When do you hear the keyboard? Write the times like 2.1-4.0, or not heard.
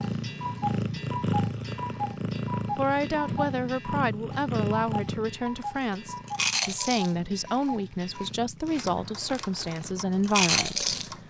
not heard.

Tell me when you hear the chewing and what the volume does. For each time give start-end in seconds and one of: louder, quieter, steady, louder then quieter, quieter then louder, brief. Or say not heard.
5.9-11.1 quieter then louder.